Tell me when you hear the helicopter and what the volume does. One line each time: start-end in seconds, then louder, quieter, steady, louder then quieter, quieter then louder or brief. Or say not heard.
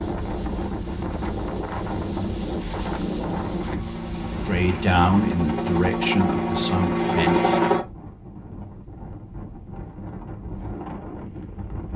1.9-7.8 louder.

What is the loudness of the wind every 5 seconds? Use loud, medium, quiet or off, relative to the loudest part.
loud, medium, medium.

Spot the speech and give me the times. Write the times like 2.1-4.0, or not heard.
4.5-7.7.